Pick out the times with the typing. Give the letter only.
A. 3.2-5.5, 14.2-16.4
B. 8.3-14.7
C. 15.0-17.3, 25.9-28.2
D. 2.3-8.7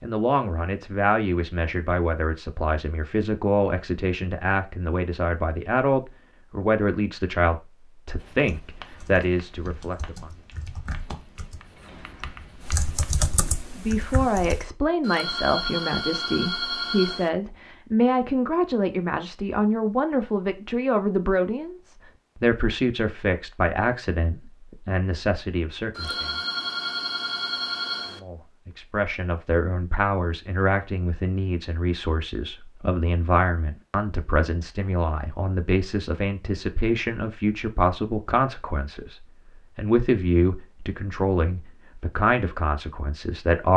B.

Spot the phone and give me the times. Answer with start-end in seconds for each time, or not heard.
15.0-17.3, 25.9-28.2.